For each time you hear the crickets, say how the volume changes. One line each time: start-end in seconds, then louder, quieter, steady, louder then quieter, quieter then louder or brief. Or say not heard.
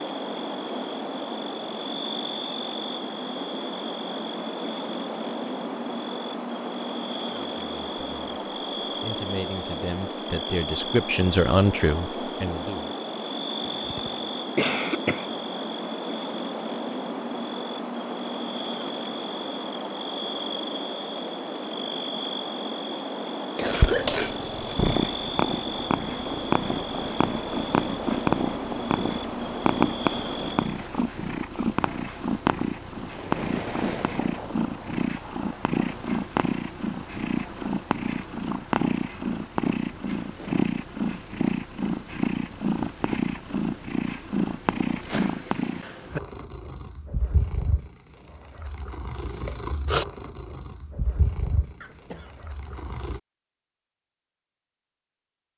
0.0-30.8 steady.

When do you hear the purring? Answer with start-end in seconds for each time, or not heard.
23.6-53.2.